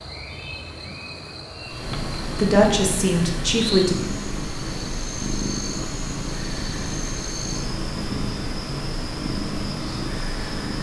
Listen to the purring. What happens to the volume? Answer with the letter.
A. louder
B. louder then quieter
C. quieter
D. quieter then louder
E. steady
E.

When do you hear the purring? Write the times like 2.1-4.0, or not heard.
1.6-10.7.